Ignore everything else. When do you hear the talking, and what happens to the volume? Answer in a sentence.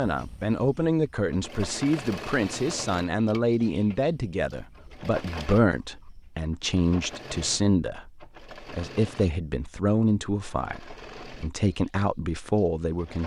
The talking can be heard from 0.0 to 13.2 s, at a steady volume.